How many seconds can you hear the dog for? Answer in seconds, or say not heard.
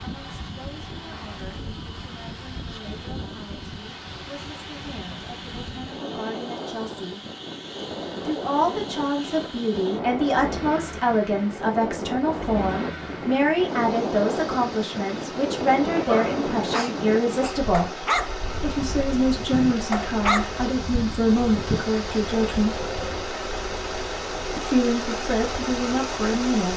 6 s.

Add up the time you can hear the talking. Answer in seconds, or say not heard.
23 s.